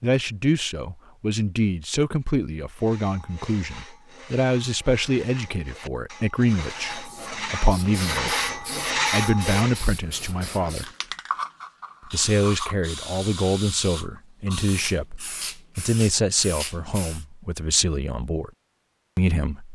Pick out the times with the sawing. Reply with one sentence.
You can hear the sawing from 2.7 to 9.9 s.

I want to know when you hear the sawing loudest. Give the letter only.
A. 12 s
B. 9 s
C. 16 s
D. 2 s
B.